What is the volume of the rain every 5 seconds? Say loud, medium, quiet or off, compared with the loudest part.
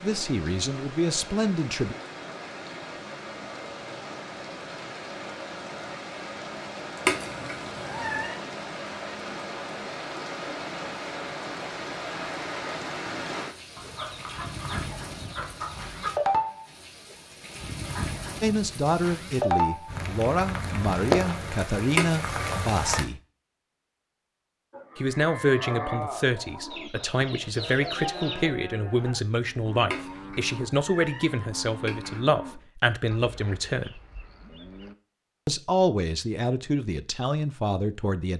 medium, medium, medium, loud, loud, off, off, off.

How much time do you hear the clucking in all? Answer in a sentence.
You can hear the clucking for 4 seconds altogether.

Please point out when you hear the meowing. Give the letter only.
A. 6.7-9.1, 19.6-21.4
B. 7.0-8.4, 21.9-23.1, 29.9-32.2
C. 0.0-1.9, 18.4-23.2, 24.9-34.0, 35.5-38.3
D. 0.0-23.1
B.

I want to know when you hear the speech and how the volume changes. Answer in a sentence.
The speech can be heard briefly from 0.0 to 1.9 s; from 18.4 to 23.2 s, at a steady volume; from 24.9 to 34.0 s, at a steady volume; and briefly from 35.5 to 38.3 s.